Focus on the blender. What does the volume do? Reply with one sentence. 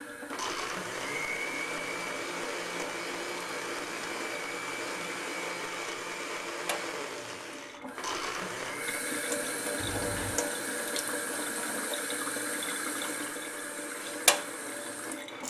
The loudness of the blender goes down.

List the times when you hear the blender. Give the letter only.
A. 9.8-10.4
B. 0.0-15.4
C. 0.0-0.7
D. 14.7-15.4
B.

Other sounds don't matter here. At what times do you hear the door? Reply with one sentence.
You can hear the door from 9.8 to 10.4 s.